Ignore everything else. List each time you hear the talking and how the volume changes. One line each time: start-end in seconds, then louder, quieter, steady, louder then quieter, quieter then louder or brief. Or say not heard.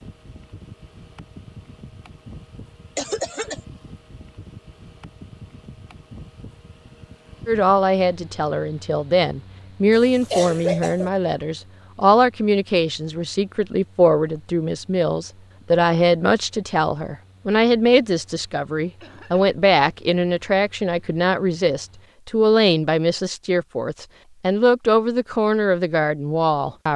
7.5-26.9 steady.